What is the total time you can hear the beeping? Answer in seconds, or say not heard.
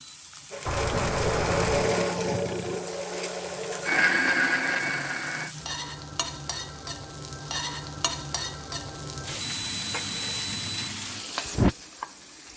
3 s.